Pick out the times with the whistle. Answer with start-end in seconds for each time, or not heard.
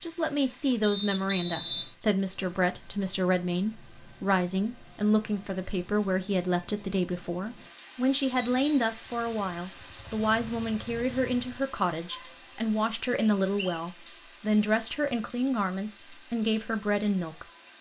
0.8-1.9, 8.2-8.9, 13.2-13.8.